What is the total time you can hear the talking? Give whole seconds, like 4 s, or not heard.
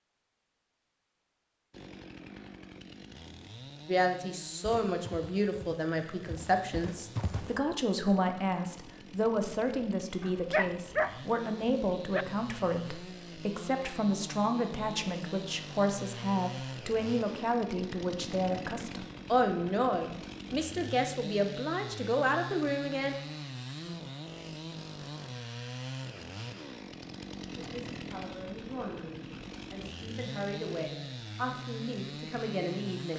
25 s.